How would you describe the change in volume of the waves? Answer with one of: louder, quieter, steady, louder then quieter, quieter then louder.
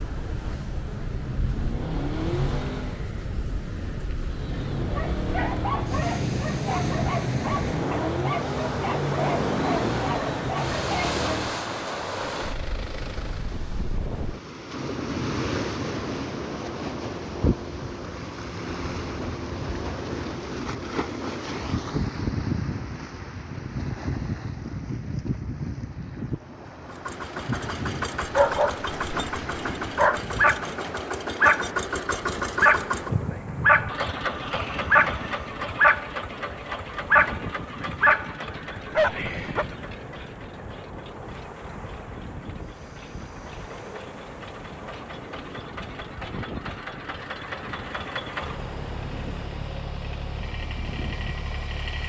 quieter.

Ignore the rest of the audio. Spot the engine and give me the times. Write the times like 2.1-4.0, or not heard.
0.0-3.0, 4.2-13.6, 26.9-52.0.